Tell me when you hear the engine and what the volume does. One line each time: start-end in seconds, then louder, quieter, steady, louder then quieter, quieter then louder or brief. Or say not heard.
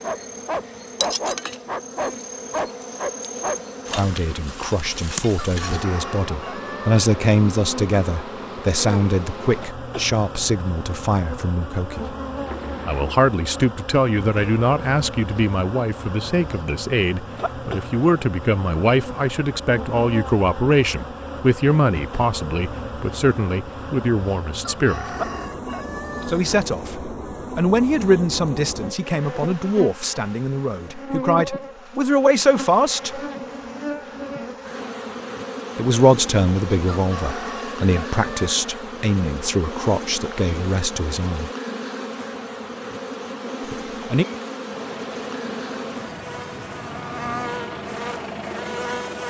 44.7-49.2 louder.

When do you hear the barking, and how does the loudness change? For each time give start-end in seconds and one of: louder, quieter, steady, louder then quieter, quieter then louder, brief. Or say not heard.
0.0-4.0 steady.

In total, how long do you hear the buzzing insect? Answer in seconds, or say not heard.
49 s.